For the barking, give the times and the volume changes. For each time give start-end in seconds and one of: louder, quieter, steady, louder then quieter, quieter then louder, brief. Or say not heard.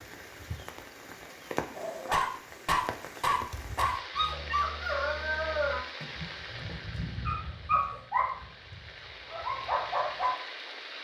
1.8-10.3 quieter.